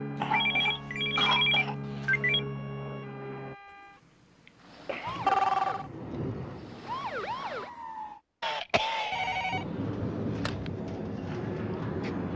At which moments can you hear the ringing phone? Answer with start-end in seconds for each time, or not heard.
0.3-2.5, 5.0-5.9, 9.1-10.7.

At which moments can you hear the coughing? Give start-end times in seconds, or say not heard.
0.1-1.8, 4.5-5.3, 8.4-9.6.